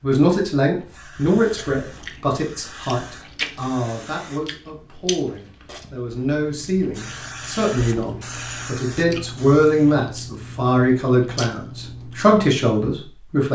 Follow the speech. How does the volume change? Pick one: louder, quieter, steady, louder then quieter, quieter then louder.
quieter then louder.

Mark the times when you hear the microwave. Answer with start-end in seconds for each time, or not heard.
not heard.